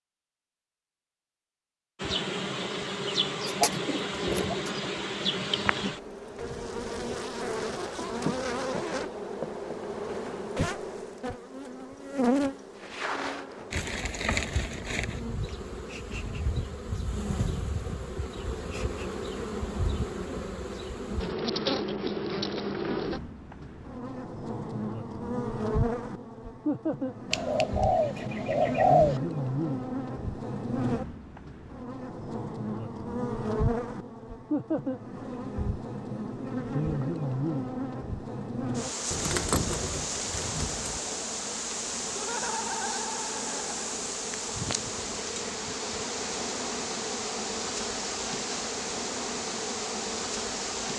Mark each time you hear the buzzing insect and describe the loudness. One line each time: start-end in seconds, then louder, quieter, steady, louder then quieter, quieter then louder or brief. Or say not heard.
2.0-50.9 steady.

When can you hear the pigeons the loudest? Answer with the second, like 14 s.
29 s.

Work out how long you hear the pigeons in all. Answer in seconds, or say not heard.
5 s.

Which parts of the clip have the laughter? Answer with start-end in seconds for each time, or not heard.
42.1-43.7.